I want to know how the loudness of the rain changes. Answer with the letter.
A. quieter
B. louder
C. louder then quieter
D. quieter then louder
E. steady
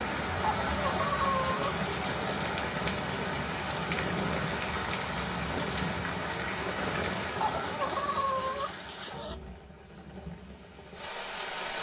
A.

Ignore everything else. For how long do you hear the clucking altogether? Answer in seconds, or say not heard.
4 s.